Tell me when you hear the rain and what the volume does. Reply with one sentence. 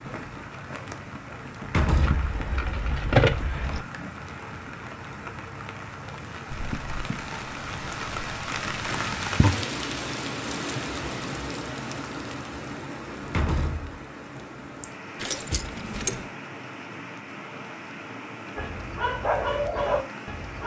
The rain can be heard from 0.0 to 20.6 s, getting louder then quieter.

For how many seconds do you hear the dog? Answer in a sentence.
The dog can be heard for 2 seconds in total.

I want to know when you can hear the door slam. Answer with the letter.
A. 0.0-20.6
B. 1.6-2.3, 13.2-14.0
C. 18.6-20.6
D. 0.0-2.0
B.